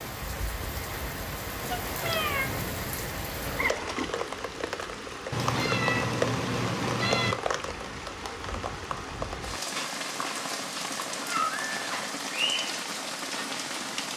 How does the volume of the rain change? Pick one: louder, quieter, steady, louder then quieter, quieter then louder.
steady.